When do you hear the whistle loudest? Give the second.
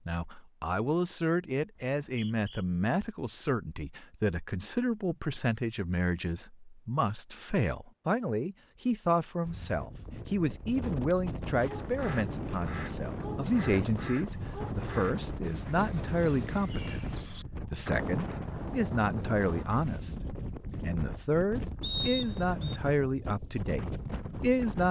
22 s.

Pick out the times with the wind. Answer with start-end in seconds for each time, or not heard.
9.4-24.8.